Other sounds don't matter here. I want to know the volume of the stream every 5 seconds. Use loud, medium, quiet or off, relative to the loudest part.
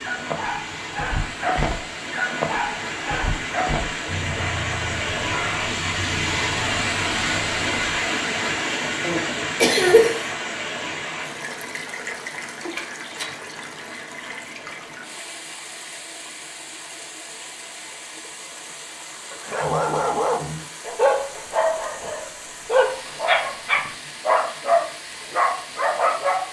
medium, loud, medium, quiet, quiet, quiet.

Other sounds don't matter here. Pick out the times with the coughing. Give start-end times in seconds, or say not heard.
9.0-10.2.